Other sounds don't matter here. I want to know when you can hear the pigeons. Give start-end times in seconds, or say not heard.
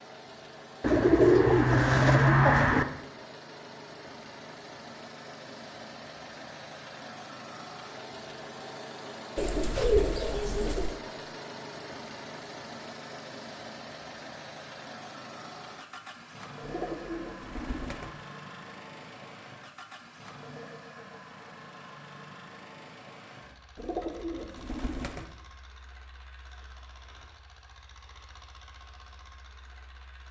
0.8-2.9, 9.3-10.9, 16.6-18.1, 23.8-25.2.